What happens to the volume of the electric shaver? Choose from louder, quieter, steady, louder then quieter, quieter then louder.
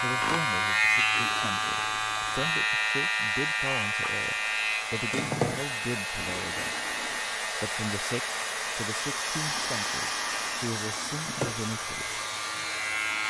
quieter.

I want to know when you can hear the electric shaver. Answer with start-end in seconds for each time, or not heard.
0.0-13.2.